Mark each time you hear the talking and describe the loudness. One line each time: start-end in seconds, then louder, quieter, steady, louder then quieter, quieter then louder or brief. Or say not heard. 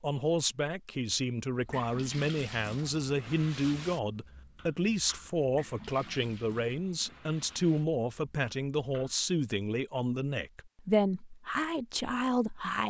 0.0-12.8 steady.